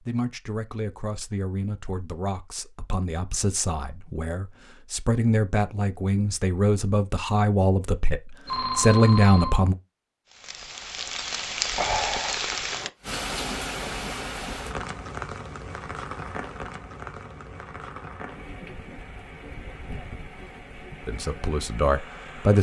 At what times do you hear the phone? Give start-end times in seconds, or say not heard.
8.4-9.6.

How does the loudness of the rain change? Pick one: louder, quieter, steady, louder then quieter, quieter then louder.
quieter.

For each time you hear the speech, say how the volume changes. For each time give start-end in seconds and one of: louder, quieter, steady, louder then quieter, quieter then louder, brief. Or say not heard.
0.0-9.8 louder
21.1-22.5 brief.